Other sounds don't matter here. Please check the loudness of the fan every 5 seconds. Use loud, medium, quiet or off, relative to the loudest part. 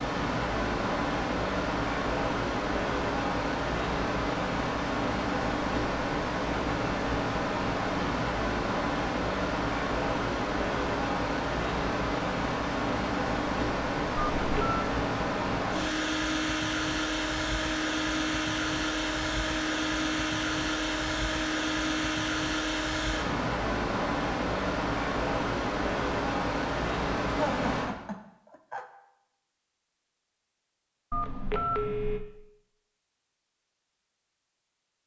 loud, loud, loud, loud, loud, loud, off.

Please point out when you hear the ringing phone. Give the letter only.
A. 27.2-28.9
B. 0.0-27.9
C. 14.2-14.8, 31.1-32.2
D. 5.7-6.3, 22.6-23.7
C.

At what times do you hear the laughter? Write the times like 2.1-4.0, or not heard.
27.2-28.9.